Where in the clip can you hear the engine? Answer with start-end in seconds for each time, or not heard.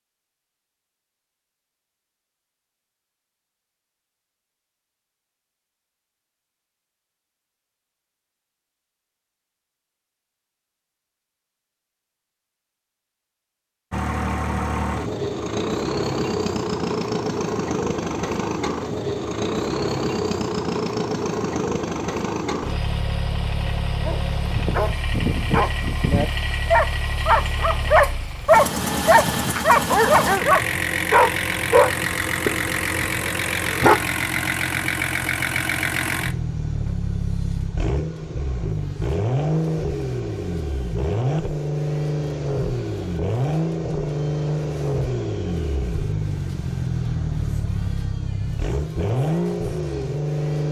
13.9-50.6.